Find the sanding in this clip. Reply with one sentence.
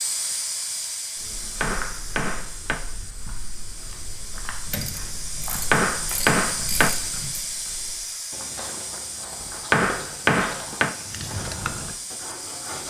The sanding can be heard from 11.1 to 12.8 s.